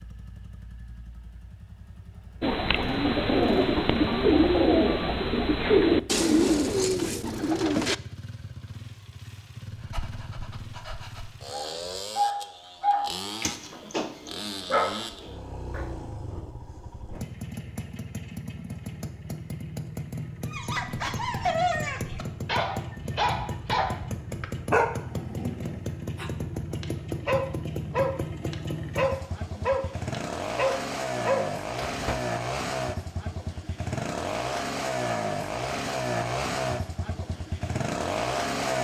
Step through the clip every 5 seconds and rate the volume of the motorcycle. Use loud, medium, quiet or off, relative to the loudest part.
quiet, quiet, medium, medium, medium, medium, loud, loud.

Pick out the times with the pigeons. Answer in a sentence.
You can hear the pigeons from 2.4 to 8.0 s.